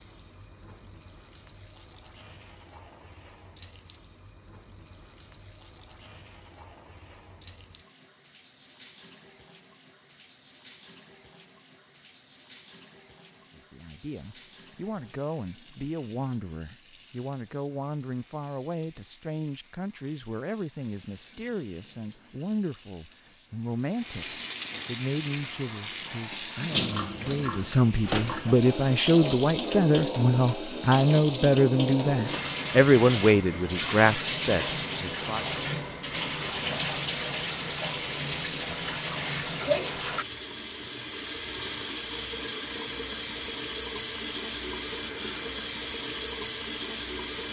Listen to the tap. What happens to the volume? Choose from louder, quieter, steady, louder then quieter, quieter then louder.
louder.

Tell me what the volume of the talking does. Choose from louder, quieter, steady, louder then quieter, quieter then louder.
louder.